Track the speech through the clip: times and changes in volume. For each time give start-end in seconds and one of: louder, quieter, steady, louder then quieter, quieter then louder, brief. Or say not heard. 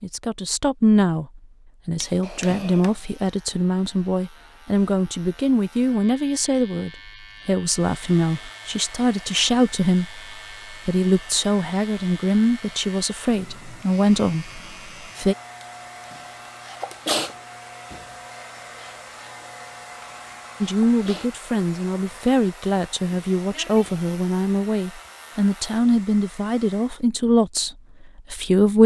0.0-15.3 steady
20.6-28.8 steady.